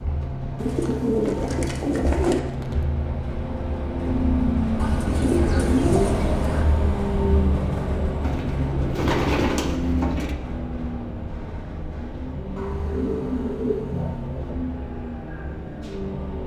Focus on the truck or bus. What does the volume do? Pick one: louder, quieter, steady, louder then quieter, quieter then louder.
louder then quieter.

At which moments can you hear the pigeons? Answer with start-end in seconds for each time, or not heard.
0.6-2.4, 4.8-6.7, 8.2-10.3, 12.6-14.4.